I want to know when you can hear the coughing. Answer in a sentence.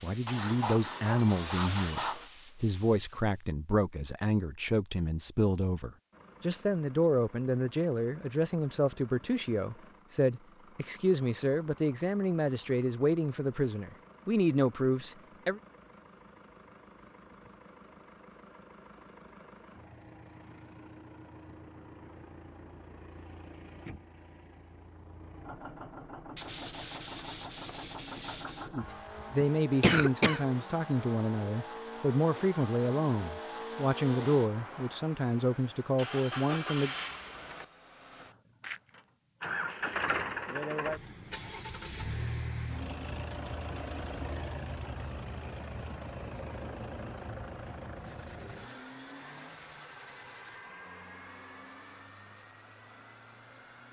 The coughing can be heard from 28.8 to 30.4 s.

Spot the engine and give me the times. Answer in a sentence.
The engine can be heard from 6.1 to 53.8 s.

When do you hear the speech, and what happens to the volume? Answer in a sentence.
You can hear the speech from 0.0 to 15.6 s, at a steady volume; and from 28.7 to 37.0 s, at a steady volume.